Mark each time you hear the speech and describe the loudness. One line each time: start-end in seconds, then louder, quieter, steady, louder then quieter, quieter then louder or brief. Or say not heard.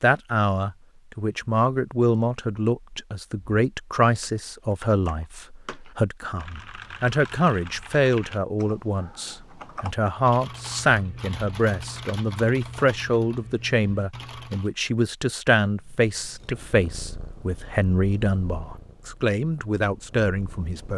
0.0-20.9 steady.